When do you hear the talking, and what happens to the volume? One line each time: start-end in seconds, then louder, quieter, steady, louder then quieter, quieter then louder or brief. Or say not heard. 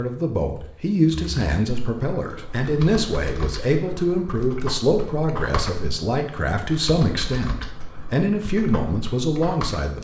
0.0-9.9 steady.